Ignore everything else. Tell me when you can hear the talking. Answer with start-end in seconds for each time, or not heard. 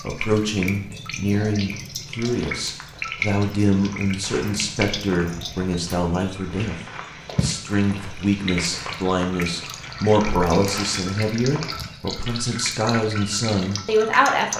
0.0-6.8, 7.4-14.5.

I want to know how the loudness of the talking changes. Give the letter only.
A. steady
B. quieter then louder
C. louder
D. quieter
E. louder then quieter
A.